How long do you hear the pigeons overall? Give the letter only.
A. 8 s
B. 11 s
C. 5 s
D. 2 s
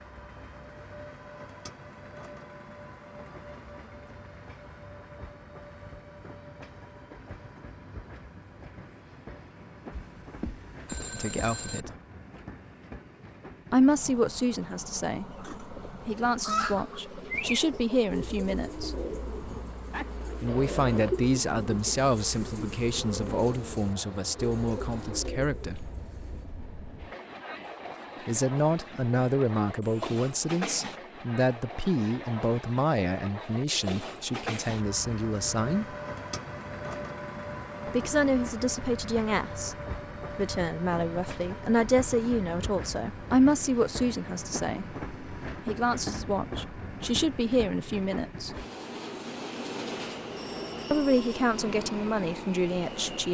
B.